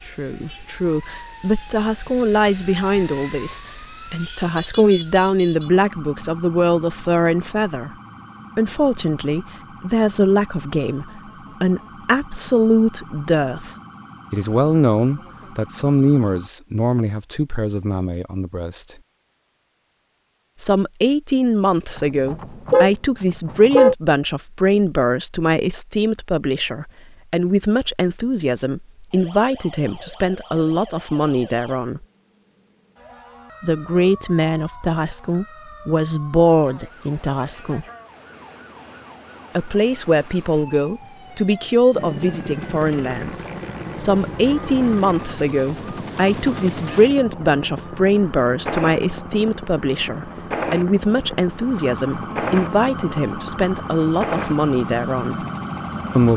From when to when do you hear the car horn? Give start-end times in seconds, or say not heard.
21.9-23.9.